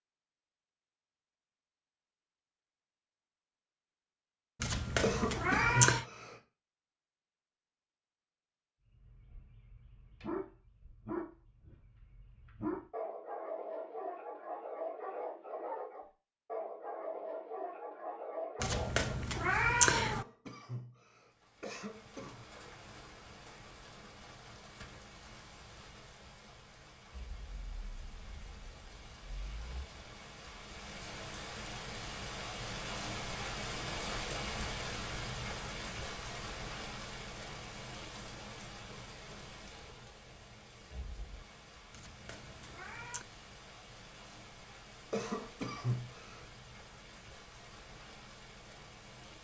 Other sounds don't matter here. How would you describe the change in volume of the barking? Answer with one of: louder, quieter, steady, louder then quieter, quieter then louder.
steady.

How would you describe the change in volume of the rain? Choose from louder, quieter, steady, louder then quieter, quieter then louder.
louder then quieter.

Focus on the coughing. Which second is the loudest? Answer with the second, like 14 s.
6 s.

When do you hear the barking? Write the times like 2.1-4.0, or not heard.
9.0-19.1.